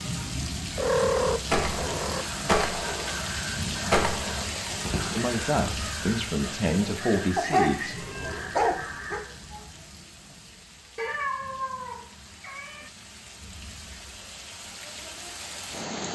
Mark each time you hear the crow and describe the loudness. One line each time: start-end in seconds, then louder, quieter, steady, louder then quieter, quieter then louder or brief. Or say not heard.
0.8-9.7 quieter.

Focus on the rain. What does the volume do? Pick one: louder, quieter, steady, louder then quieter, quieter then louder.
quieter then louder.